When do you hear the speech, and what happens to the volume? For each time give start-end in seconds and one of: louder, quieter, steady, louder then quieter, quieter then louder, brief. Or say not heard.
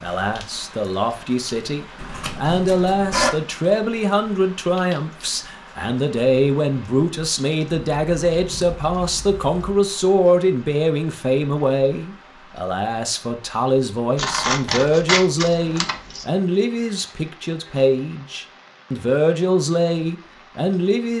0.0-21.1 steady.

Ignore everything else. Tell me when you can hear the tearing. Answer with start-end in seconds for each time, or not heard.
not heard.